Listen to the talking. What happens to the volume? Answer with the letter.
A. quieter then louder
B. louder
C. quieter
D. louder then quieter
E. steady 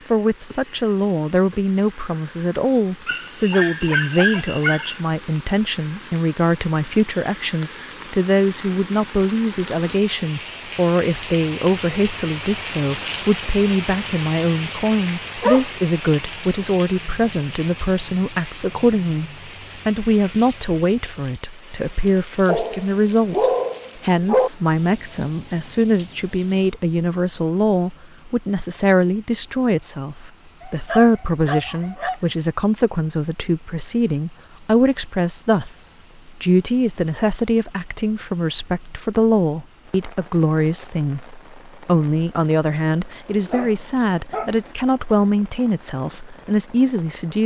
E.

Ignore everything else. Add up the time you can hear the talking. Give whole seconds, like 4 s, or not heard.
47 s.